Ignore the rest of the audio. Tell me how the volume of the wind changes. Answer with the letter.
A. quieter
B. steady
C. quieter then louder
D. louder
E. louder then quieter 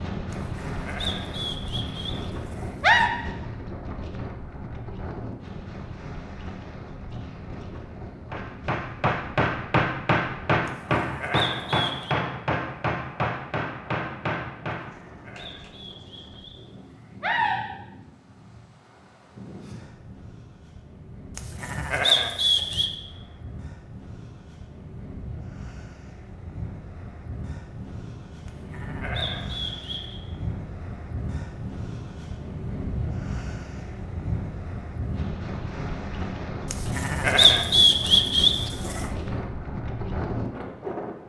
C.